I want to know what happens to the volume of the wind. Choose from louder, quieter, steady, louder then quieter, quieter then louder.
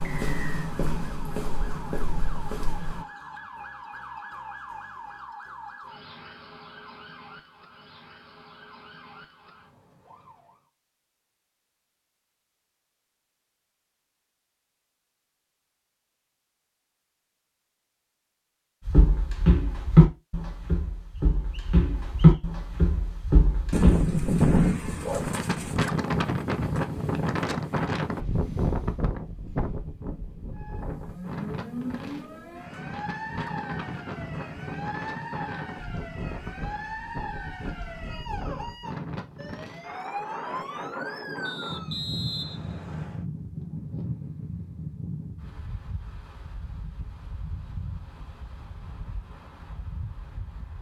quieter.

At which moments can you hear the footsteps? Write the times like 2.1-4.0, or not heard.
0.0-3.0, 18.9-24.1.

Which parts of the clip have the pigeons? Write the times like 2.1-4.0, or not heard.
23.7-25.8.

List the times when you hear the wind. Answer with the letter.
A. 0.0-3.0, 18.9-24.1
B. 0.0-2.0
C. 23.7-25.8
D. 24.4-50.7
D.